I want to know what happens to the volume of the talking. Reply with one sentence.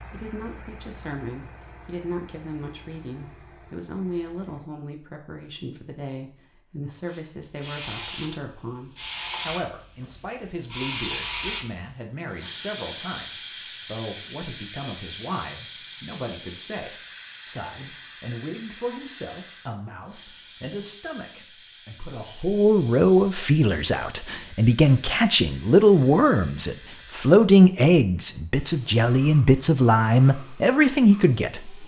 The volume of the talking goes up.